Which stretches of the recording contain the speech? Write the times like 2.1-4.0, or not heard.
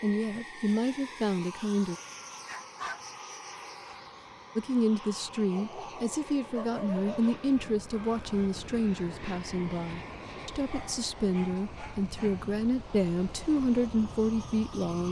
0.0-1.9, 4.5-15.0.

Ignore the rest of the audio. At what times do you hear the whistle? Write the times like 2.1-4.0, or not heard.
not heard.